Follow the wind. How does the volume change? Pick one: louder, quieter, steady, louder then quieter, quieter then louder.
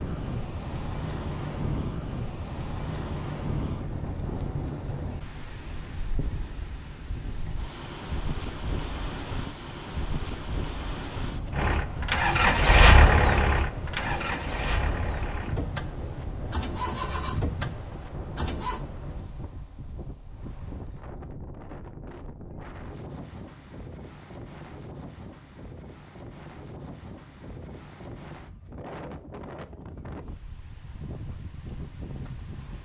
quieter.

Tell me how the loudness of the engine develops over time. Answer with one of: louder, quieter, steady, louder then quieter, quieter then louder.
quieter.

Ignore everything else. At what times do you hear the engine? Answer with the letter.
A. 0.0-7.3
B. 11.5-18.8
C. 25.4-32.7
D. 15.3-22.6
B.